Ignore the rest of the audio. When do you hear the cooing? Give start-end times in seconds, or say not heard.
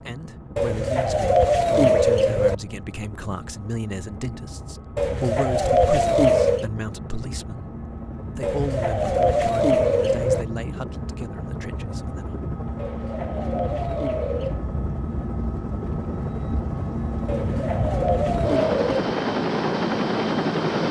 0.6-2.5, 5.0-6.7, 8.4-10.4, 12.8-14.7, 17.2-19.2.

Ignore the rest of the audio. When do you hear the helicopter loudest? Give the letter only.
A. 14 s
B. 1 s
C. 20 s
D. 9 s
C.